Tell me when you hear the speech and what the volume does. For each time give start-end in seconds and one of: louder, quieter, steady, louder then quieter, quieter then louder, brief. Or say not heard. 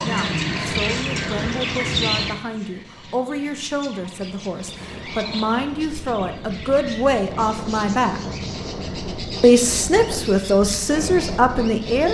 0.0-8.2 louder
9.4-12.1 brief.